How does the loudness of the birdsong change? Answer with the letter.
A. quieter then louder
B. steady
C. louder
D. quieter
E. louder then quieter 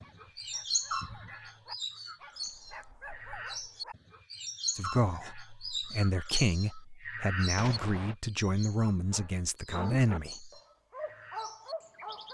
D.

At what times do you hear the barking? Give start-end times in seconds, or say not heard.
0.0-4.0, 9.1-12.2.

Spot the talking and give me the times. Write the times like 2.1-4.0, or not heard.
4.8-10.5.